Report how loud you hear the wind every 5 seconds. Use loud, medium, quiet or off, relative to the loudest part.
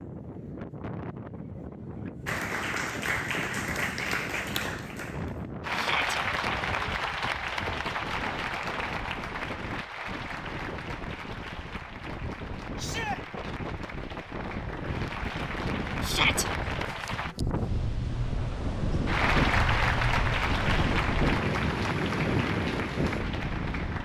medium, medium, medium, loud, loud.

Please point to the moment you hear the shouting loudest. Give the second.
16 s.